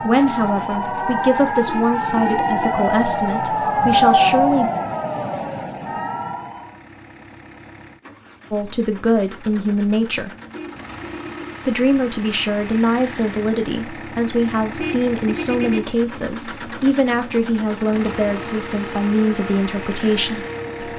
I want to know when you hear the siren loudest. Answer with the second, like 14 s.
4 s.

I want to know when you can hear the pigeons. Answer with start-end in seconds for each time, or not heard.
not heard.